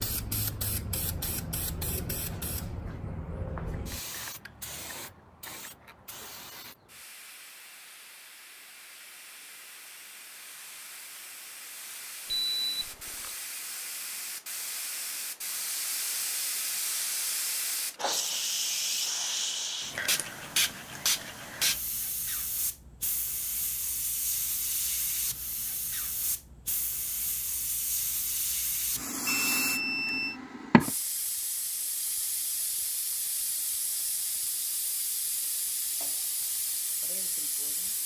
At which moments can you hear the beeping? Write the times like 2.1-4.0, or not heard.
12.2-13.3, 29.2-30.4.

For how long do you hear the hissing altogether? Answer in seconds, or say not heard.
38 s.